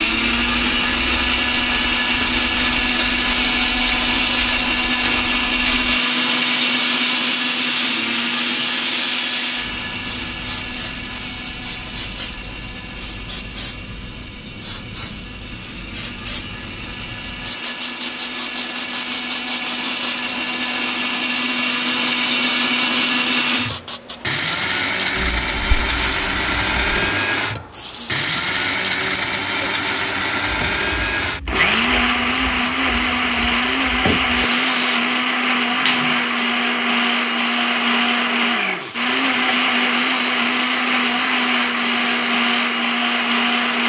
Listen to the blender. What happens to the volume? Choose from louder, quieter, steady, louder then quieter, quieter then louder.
quieter then louder.